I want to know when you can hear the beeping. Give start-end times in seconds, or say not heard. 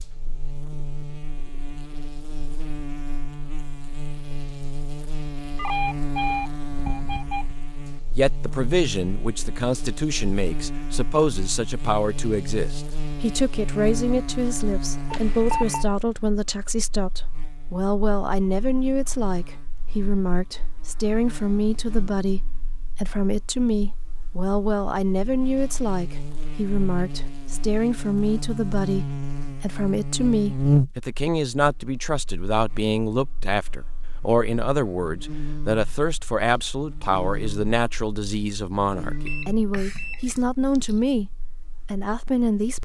5.5-7.5, 15.1-15.8, 39.1-41.0.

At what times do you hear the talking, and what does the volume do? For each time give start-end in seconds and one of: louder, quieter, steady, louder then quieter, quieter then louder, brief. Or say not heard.
8.2-41.3 steady
41.9-42.8 brief.